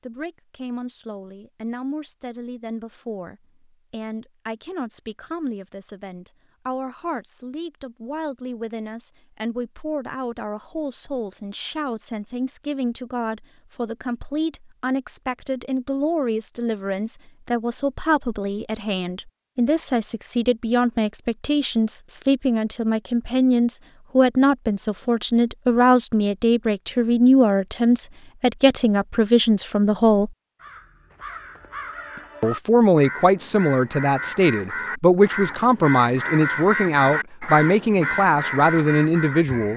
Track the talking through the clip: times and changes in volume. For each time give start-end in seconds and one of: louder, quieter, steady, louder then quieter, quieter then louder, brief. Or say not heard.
0.0-30.3 louder
32.4-39.7 steady.